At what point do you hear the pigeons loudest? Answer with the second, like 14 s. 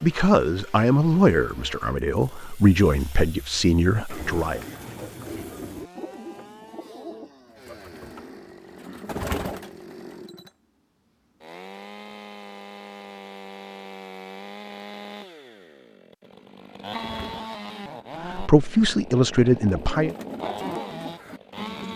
9 s.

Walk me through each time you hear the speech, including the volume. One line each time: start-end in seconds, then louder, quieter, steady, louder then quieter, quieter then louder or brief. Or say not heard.
0.0-4.7 steady
18.2-20.1 brief.